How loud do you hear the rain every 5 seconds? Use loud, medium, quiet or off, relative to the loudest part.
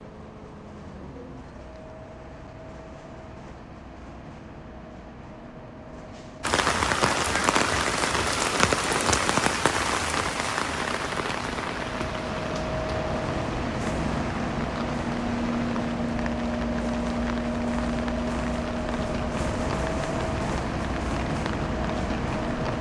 off, loud, medium, quiet, quiet.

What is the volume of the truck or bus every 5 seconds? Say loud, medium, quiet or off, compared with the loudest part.
quiet, quiet, loud, loud, loud.